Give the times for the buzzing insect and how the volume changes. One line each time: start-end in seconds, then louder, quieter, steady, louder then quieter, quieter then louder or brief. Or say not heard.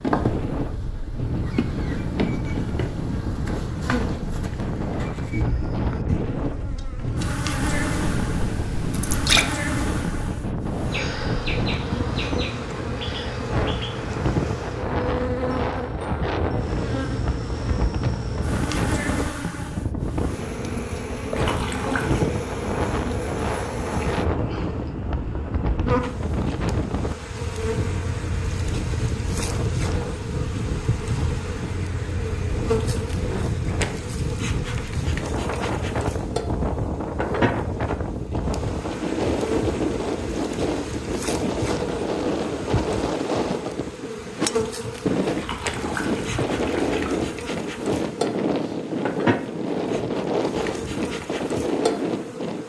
0.0-52.6 steady.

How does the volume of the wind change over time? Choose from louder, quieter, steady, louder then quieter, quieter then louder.
steady.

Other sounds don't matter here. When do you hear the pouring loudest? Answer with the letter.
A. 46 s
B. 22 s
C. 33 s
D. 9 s
D.